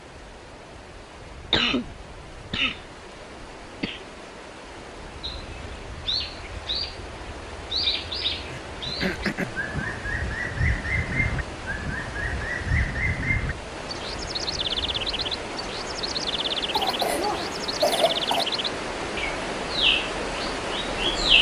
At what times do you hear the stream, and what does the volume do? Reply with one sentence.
The stream can be heard from 0.0 to 21.3 s, getting louder.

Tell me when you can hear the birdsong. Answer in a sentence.
The birdsong can be heard from 5.2 to 21.3 s.